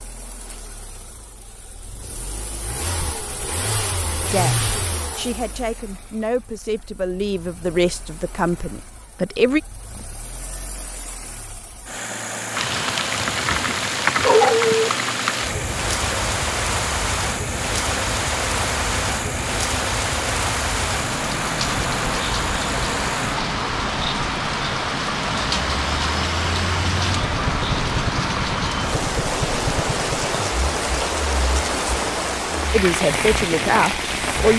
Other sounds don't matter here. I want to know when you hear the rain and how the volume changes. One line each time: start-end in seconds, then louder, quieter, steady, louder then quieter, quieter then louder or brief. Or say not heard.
12.5-34.5 steady.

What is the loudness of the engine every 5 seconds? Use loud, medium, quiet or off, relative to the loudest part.
loud, quiet, loud, loud, loud, loud, medium.